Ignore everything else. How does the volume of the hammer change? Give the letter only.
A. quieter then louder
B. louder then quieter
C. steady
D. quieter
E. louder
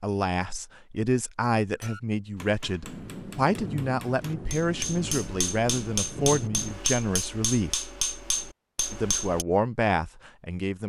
E.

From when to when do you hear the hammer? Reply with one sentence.
You can hear the hammer from 1.8 to 9.4 s.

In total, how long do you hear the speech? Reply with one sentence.
The speech can be heard for 10 seconds in total.